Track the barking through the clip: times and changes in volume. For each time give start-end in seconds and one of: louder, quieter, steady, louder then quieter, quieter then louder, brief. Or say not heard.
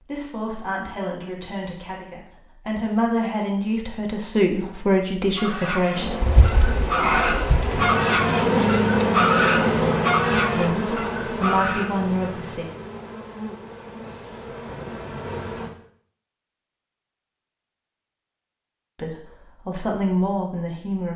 5.3-12.0 louder then quieter.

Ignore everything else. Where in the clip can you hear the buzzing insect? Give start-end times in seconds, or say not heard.
5.9-15.7.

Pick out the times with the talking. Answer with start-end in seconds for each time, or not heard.
0.0-6.1, 10.5-12.7, 18.9-21.1.